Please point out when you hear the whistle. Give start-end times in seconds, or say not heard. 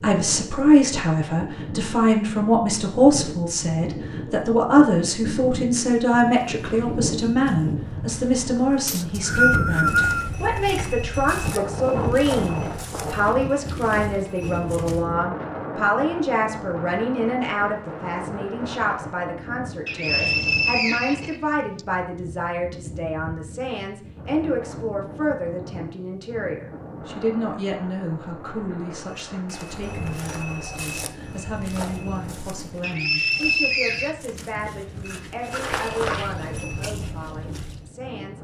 8.8-10.3, 19.9-21.8, 32.8-34.1.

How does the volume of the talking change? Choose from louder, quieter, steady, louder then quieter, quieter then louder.
quieter.